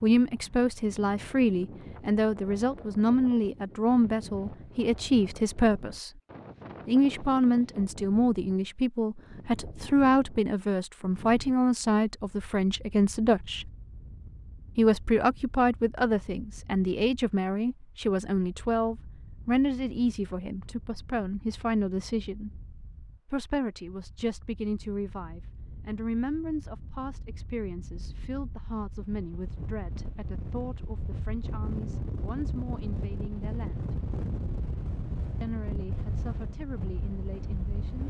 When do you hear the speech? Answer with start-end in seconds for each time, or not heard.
0.0-6.1, 6.8-13.7, 14.8-22.6, 23.3-34.0, 35.4-38.0.